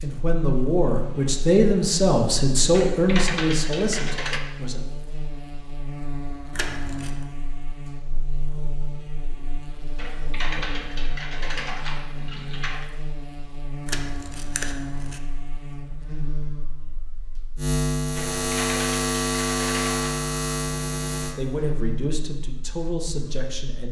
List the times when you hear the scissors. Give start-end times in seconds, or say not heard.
6.5-7.2, 13.8-15.2.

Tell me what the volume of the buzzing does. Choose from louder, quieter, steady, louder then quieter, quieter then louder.
louder.